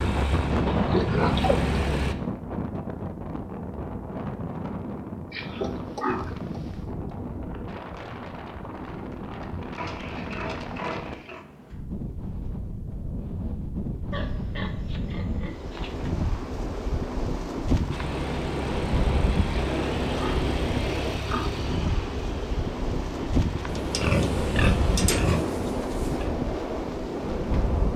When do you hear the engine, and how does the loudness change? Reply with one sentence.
The engine can be heard briefly from 0.0 to 2.1 s; and from 17.9 to 25.2 s, getting quieter then louder.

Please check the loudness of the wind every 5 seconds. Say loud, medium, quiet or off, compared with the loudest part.
loud, medium, medium, loud, loud, loud.